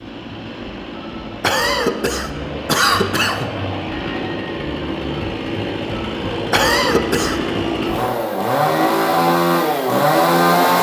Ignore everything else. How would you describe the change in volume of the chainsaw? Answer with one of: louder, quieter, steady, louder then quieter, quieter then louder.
louder.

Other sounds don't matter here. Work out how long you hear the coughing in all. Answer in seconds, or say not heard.
3 s.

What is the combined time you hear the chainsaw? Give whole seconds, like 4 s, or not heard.
11 s.